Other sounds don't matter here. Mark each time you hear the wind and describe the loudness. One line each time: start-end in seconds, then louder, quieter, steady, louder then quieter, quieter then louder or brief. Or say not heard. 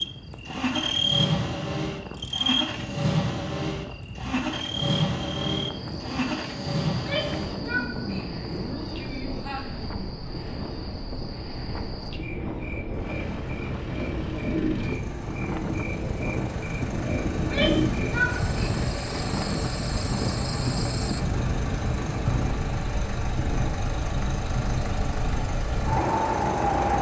0.0-26.9 louder.